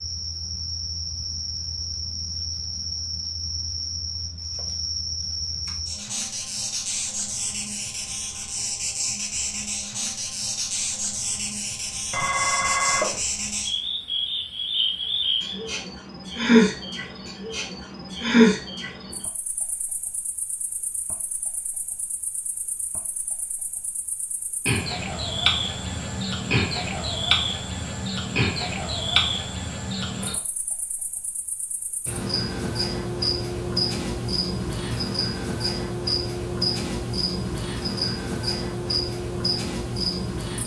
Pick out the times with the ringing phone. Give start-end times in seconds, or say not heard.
12.1-13.2.